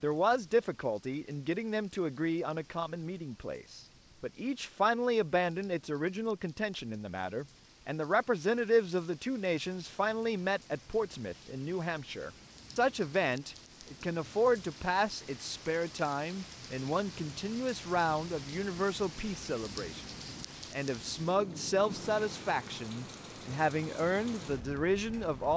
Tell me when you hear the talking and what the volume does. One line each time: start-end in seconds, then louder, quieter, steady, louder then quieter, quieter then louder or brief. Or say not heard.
0.0-25.5 steady.